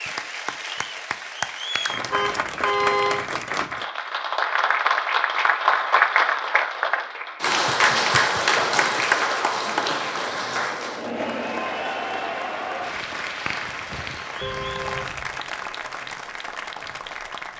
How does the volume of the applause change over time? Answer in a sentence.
The volume of the applause goes up, then down.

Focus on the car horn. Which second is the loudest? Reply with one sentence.
The volume of the car horn peaks at 3 seconds.